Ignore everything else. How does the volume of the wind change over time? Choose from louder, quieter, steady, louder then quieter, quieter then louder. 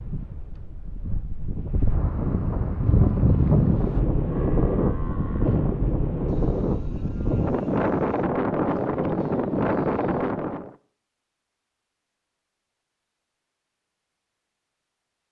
louder.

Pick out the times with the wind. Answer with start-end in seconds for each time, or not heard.
0.0-10.8.